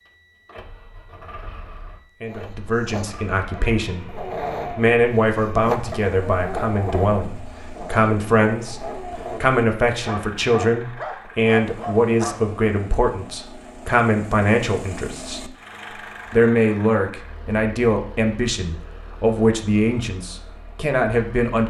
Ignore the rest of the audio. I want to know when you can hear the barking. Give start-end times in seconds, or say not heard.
2.2-12.3.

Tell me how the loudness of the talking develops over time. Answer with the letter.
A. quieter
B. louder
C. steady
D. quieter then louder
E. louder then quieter
C.